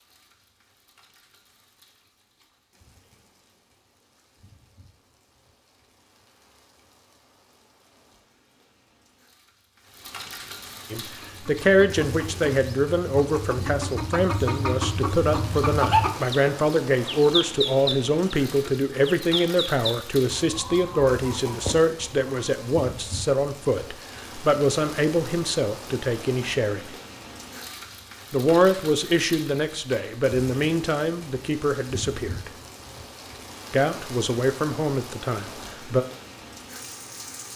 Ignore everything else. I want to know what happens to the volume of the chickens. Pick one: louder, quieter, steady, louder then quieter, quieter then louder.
louder then quieter.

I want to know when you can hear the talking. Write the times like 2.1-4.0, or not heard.
10.9-26.9, 28.3-32.5, 33.7-36.0.